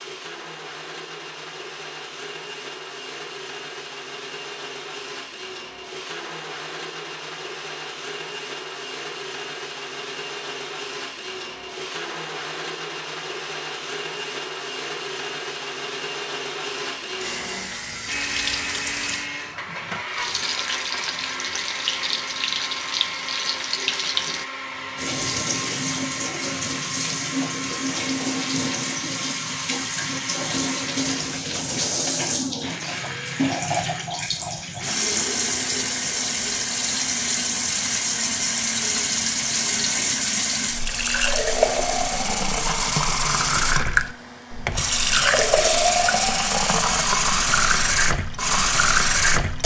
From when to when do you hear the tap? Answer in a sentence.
The tap can be heard from 17.1 to 49.6 s.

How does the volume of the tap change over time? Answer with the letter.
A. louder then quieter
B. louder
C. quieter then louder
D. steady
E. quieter
B.